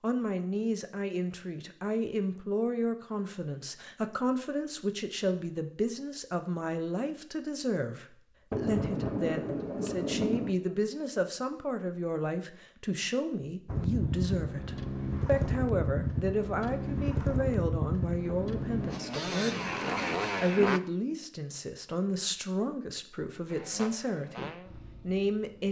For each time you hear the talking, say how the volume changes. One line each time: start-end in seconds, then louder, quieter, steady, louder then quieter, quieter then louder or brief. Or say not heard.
0.0-25.6 steady.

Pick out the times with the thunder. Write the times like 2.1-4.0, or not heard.
8.5-10.5, 18.3-20.3.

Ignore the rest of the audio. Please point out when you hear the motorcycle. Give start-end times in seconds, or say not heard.
13.7-20.8, 23.5-25.6.